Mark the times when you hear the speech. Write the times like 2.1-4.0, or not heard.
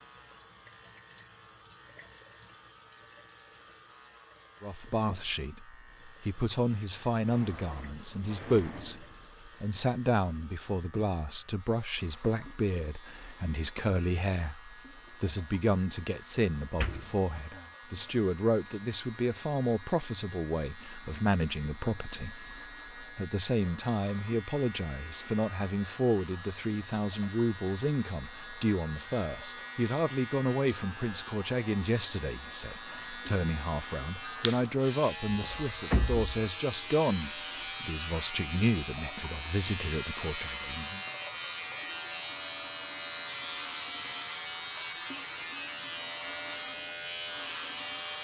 4.6-41.0.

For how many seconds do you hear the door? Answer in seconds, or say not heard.
4 s.